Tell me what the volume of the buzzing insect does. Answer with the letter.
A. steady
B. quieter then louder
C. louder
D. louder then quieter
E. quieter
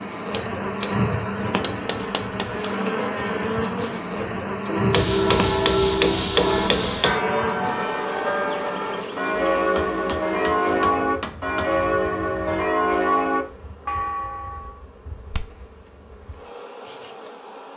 E.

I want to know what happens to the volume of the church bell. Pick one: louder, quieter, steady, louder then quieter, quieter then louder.
steady.